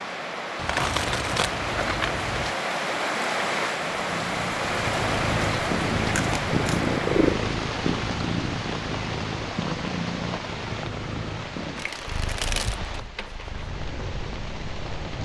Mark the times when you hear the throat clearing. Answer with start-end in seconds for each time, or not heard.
not heard.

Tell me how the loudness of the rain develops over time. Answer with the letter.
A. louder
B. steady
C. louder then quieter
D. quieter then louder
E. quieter
E.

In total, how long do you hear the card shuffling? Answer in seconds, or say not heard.
5 s.